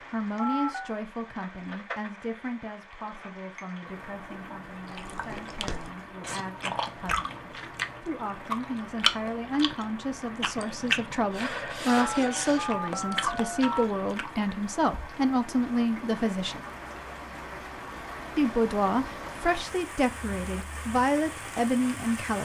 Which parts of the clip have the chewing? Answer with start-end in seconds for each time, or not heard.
4.7-14.4.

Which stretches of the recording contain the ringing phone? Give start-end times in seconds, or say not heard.
0.3-1.0, 11.9-13.8.